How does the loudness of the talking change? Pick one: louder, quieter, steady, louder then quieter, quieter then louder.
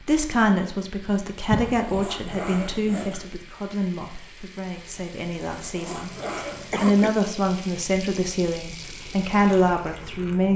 quieter then louder.